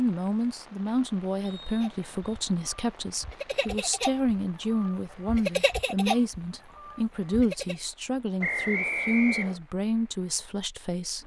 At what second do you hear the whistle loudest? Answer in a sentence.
The loudest moment of the whistle is at 9 seconds.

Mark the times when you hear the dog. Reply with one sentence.
You can't hear the dog here.